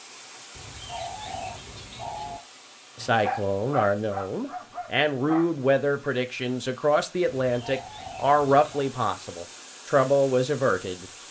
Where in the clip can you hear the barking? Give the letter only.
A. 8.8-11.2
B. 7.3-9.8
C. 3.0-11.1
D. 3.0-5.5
D.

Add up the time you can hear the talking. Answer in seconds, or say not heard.
8 s.